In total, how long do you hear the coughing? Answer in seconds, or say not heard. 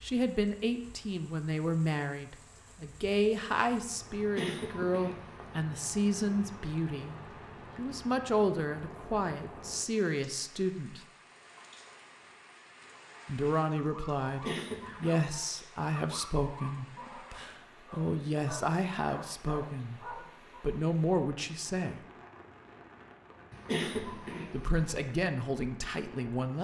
4 s.